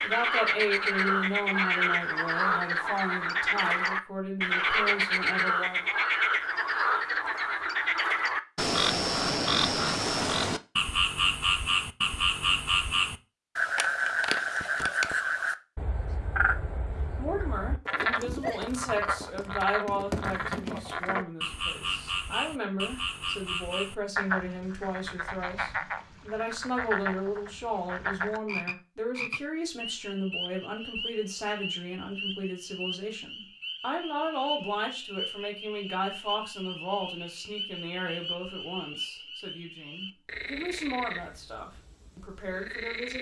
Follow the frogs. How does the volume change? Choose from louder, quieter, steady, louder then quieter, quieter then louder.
quieter.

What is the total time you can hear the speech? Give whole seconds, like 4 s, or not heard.
32 s.